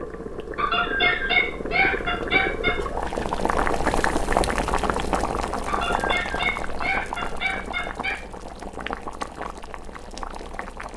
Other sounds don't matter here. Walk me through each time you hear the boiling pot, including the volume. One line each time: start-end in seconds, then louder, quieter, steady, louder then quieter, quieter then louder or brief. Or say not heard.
0.0-10.9 louder then quieter.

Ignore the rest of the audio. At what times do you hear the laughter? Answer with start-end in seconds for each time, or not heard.
0.6-2.8, 5.7-8.2.